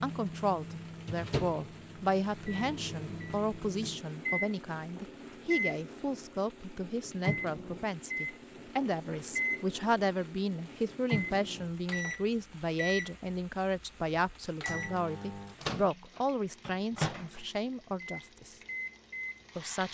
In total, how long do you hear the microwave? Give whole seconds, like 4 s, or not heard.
20 s.